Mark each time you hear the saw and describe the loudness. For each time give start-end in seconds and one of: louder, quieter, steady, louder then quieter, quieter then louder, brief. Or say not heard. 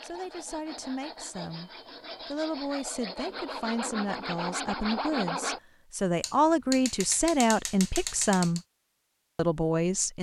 0.0-5.6 louder.